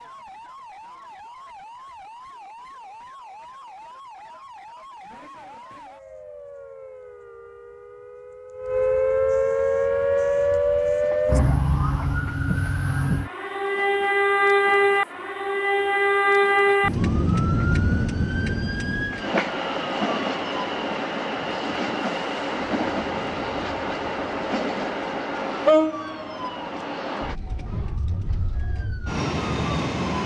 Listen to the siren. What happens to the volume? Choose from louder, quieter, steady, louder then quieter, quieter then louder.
louder then quieter.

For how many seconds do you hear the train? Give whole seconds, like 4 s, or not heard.
21 s.